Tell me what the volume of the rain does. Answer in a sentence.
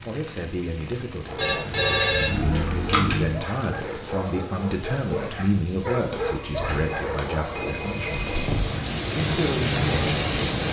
The volume of the rain goes up.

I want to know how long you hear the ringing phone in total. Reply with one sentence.
You can hear the ringing phone for 5 seconds altogether.